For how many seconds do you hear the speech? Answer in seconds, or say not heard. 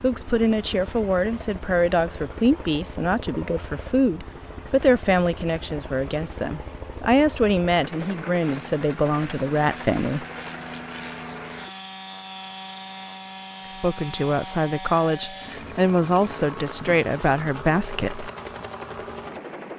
15 s.